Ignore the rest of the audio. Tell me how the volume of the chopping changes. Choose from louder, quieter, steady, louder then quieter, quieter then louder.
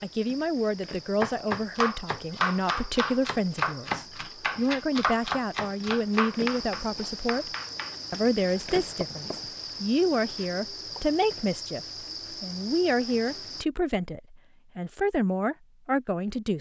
quieter.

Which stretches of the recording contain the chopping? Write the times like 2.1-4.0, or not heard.
1.2-9.5.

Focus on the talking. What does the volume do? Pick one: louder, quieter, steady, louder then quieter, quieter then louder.
steady.